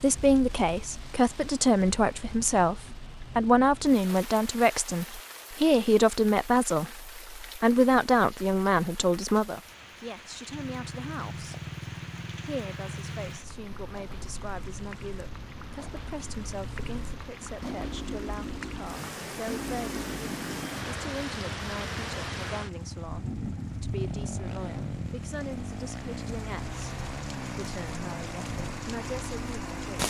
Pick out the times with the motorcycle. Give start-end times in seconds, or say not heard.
10.4-30.0.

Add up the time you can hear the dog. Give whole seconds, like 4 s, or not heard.
not heard.